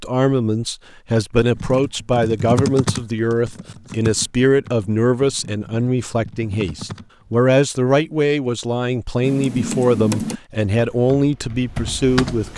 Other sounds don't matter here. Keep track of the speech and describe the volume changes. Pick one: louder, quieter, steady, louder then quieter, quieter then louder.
steady.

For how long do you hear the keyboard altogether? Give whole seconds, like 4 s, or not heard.
9 s.